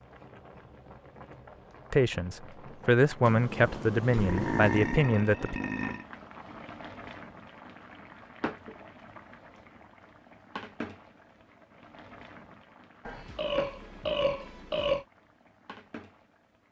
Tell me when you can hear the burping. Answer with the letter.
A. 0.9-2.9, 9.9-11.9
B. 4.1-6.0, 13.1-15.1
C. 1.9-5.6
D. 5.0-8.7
B.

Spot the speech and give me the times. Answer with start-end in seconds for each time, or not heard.
1.9-5.6.